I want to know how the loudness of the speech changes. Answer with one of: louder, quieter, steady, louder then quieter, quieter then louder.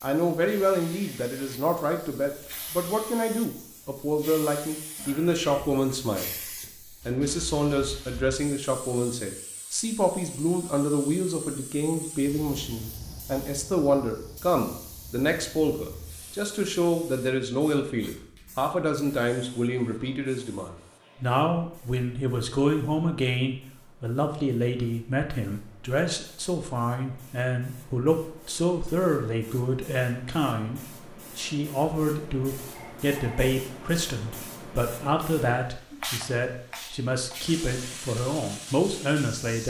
steady.